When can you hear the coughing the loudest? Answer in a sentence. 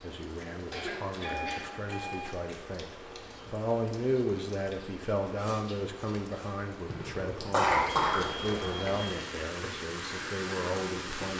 The volume of the coughing peaks at 8 seconds.